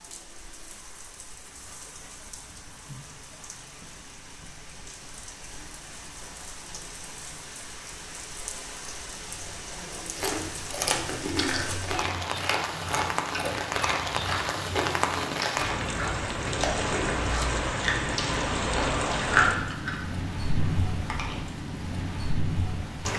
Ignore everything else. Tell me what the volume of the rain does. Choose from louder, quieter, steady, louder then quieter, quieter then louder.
louder.